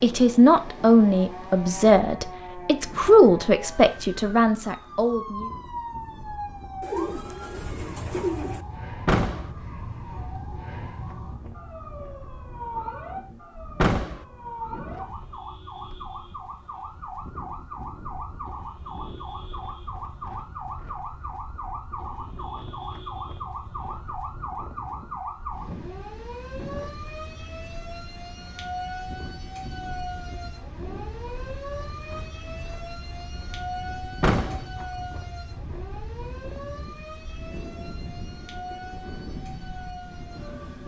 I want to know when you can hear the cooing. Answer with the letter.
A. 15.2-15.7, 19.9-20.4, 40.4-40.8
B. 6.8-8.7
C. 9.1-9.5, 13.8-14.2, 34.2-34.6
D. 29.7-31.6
B.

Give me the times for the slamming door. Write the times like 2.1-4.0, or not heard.
9.1-9.5, 13.8-14.2, 34.2-34.6.